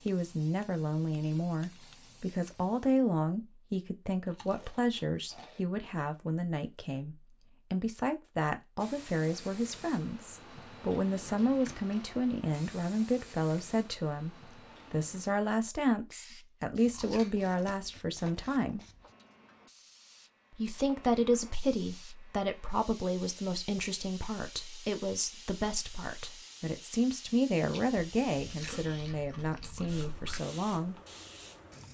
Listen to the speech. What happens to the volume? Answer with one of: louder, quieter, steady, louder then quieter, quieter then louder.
steady.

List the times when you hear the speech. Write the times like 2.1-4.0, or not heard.
0.1-18.8, 20.5-30.9.